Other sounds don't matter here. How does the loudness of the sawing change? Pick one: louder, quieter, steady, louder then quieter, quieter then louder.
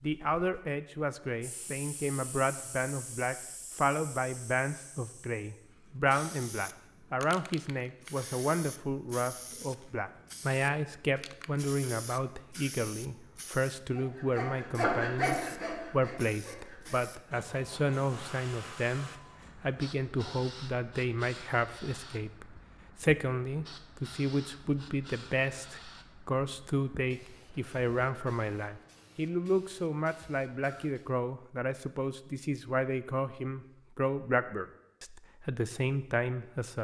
quieter.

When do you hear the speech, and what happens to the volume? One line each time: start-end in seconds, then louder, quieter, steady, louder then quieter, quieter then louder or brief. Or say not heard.
0.0-36.7 steady.